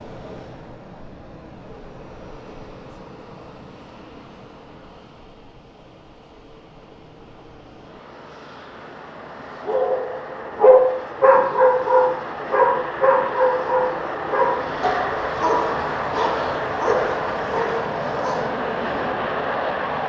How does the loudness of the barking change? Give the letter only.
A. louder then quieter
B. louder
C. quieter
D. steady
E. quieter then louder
C.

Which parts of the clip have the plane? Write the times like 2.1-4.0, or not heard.
0.0-20.0.